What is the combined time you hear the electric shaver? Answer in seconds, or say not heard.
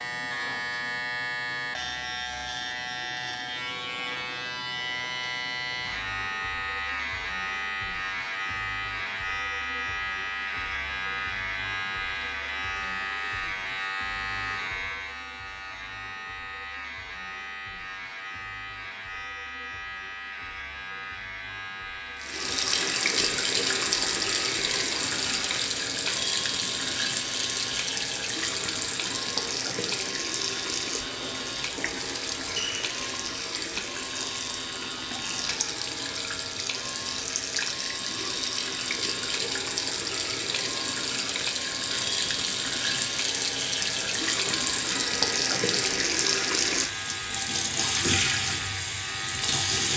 50 s.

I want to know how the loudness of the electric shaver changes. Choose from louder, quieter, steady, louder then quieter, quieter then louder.
quieter.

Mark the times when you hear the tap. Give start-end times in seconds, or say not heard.
22.2-49.9.